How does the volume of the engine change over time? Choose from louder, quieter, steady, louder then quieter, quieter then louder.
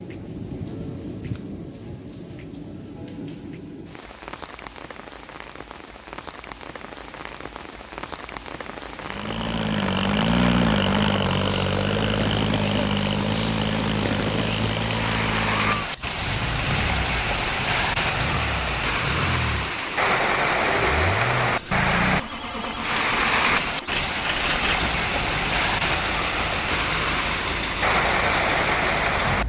quieter.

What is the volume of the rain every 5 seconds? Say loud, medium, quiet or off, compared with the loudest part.
quiet, quiet, medium, loud, loud, loud.